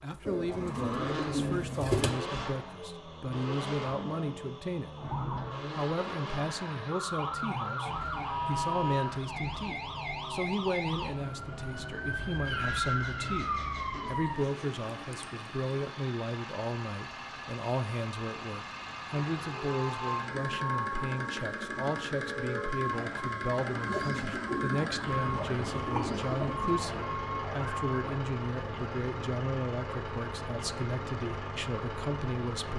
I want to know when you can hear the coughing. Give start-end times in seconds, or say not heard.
not heard.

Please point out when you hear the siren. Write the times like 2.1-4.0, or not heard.
5.0-14.4, 19.1-28.1.